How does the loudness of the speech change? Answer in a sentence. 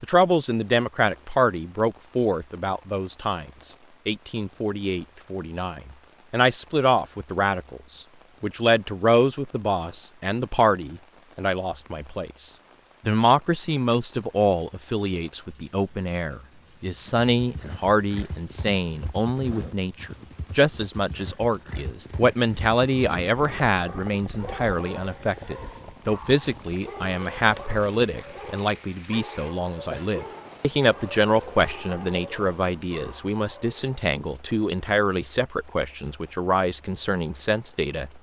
The volume of the speech stays about the same.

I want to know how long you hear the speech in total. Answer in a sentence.
The speech can be heard for 38 seconds in total.